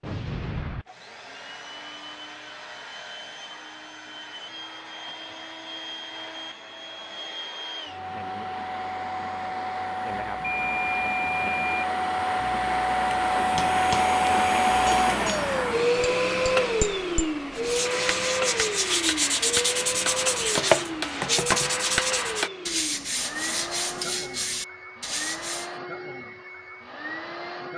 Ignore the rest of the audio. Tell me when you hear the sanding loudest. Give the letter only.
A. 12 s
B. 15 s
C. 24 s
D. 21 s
D.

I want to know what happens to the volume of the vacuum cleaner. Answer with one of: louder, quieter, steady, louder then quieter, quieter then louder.
louder then quieter.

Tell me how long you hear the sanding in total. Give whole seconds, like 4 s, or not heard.
8 s.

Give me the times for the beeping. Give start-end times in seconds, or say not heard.
10.4-11.8.